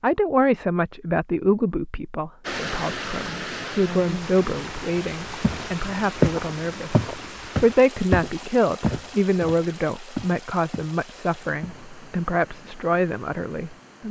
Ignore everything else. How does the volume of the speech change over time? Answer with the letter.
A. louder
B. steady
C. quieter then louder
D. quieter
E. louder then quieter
B.